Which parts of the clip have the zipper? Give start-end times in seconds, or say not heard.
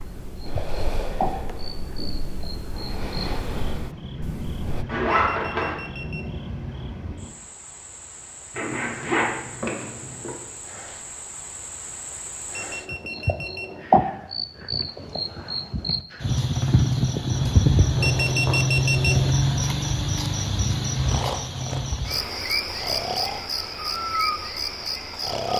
4.8-5.8, 8.6-10.3, 17.3-18.6.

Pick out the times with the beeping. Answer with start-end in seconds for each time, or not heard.
5.3-6.4, 12.5-13.8, 18.0-19.3.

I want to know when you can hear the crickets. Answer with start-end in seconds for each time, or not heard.
0.0-25.5.